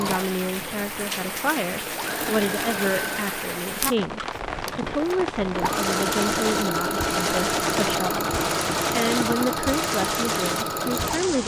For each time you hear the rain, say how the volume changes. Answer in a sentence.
You can hear the rain from 0.0 to 11.4 s, at a steady volume.